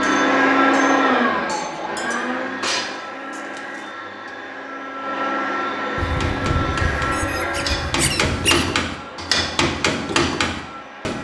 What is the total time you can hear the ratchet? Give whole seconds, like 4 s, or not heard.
not heard.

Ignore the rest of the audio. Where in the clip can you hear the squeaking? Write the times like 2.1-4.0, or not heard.
6.0-8.7.